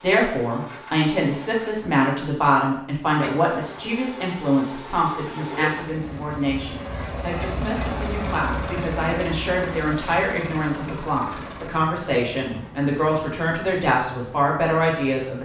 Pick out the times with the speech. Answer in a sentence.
You can hear the speech from 0.0 to 15.4 s.